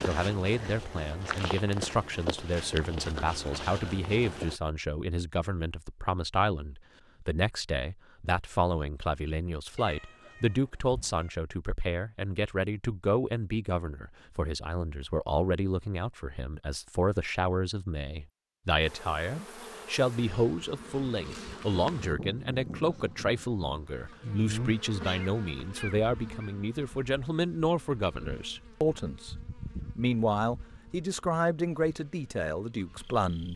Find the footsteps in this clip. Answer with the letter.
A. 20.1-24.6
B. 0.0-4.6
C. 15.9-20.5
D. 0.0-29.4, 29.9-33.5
B.